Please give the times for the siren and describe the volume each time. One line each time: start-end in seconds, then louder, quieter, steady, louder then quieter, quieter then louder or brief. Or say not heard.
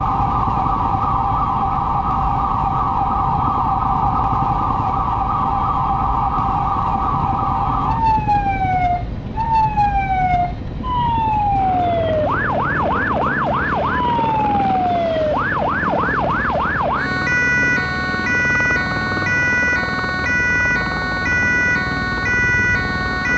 0.0-23.3 steady.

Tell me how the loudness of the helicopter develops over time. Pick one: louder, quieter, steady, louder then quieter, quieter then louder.
steady.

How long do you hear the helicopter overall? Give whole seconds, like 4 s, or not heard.
23 s.